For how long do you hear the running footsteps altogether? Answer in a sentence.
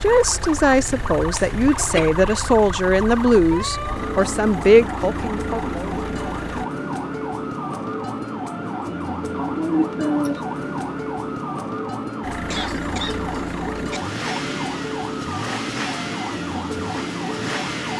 You can't hear the running footsteps here.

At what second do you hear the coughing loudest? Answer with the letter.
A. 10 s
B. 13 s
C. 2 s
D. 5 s
A.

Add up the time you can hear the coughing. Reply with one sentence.
The coughing can be heard for 3 seconds in total.